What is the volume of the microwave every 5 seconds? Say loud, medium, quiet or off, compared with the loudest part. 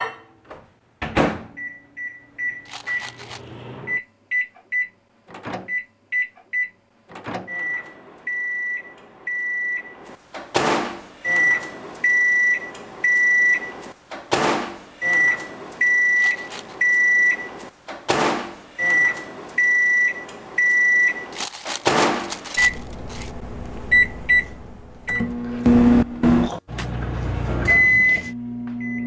medium, medium, loud, loud, loud, loud.